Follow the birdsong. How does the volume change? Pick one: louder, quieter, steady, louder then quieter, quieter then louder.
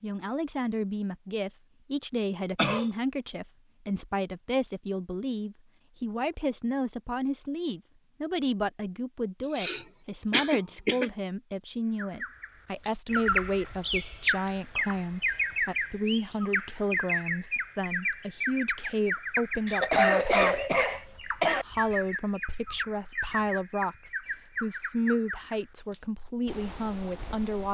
quieter.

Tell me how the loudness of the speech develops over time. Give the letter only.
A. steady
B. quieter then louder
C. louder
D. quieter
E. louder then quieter
A.